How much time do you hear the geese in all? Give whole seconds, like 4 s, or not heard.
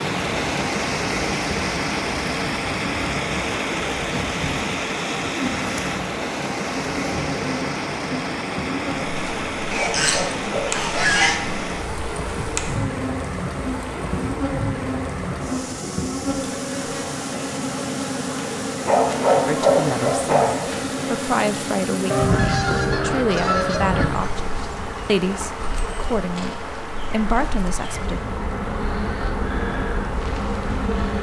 4 s.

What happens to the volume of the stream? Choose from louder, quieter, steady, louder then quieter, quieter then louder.
quieter.